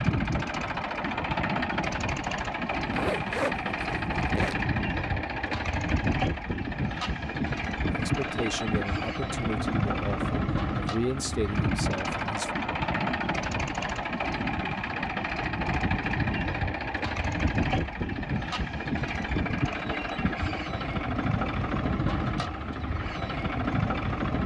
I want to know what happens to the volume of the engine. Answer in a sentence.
The volume of the engine stays about the same.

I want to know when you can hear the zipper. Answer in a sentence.
The zipper can be heard from 2.9 to 4.5 s.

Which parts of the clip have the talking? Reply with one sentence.
The talking can be heard from 7.9 to 12.5 s.